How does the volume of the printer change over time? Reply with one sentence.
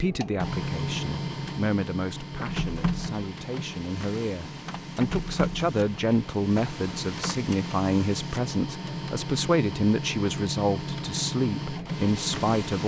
The loudness of the printer stays about the same.